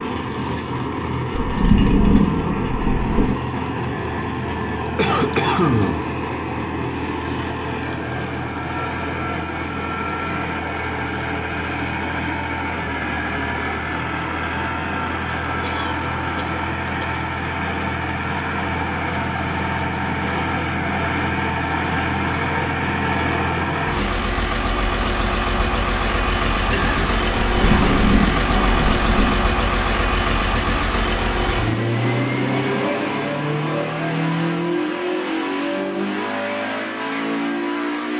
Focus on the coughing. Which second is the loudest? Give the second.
6 s.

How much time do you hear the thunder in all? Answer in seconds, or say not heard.
4 s.